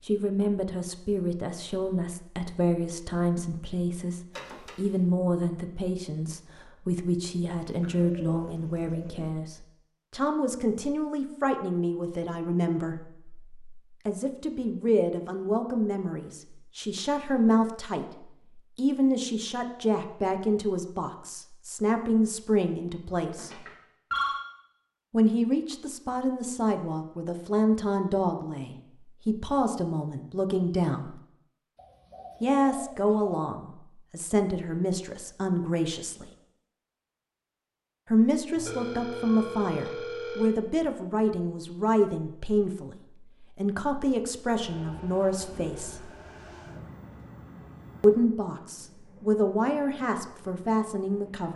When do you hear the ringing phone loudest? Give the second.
24 s.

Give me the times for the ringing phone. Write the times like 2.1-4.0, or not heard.
4.3-5.0, 23.4-24.4, 38.5-40.5.